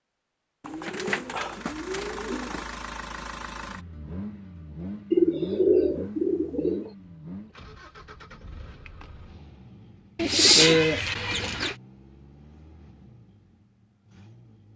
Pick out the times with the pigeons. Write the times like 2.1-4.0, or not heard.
0.6-2.6, 5.1-6.9, 10.2-11.8.